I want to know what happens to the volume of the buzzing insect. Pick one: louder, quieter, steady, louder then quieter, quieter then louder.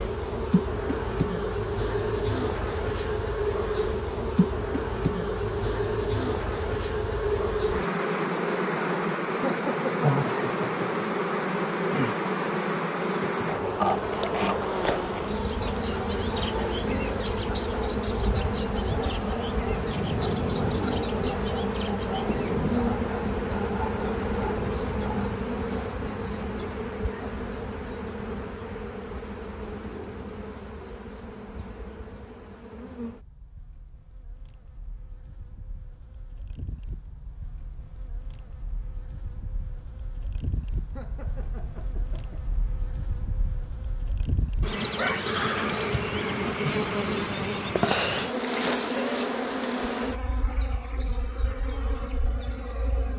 quieter then louder.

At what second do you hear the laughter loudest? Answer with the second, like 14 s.
10 s.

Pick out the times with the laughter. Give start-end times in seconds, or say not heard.
9.4-10.8, 41.0-42.5.